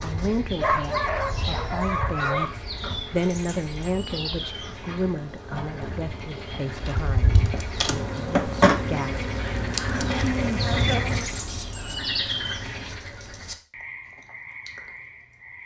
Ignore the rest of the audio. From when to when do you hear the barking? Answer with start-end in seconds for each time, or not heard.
0.6-2.5.